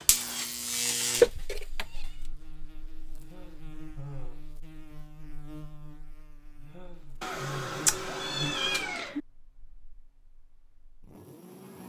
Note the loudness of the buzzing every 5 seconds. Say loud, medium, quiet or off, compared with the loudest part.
loud, medium, quiet.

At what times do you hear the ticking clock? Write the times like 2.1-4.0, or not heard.
not heard.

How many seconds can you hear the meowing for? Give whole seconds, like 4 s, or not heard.
3 s.